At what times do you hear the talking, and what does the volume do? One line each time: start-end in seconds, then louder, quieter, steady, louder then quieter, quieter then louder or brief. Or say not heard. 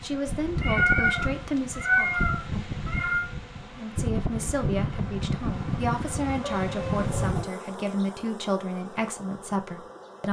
0.0-2.1 brief
3.6-10.2 steady.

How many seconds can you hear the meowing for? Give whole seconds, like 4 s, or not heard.
4 s.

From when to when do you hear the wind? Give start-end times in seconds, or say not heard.
0.0-7.5.